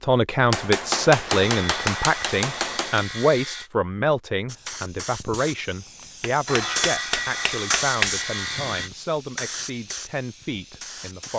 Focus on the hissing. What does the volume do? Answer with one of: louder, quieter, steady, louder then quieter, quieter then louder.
louder then quieter.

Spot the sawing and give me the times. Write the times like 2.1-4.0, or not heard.
1.2-3.7, 6.5-8.9.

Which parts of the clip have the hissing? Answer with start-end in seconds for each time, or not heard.
4.5-11.3.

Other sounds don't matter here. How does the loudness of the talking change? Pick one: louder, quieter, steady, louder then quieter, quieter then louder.
quieter.